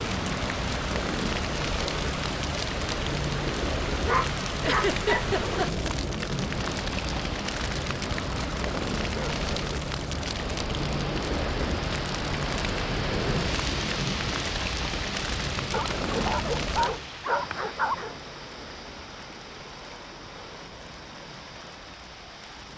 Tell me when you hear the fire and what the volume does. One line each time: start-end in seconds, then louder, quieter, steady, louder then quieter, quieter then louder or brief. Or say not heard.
0.0-22.7 quieter.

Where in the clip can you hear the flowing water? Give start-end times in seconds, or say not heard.
0.0-22.7.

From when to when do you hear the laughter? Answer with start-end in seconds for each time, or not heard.
4.6-5.9.